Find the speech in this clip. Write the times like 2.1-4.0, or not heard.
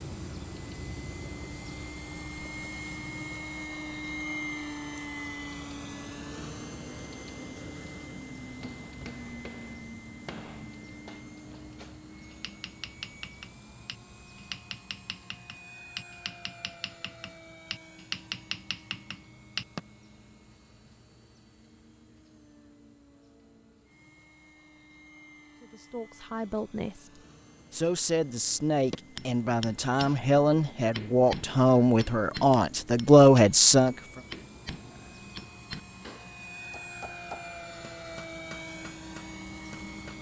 25.6-34.0.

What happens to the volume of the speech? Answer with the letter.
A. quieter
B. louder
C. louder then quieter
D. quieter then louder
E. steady
B.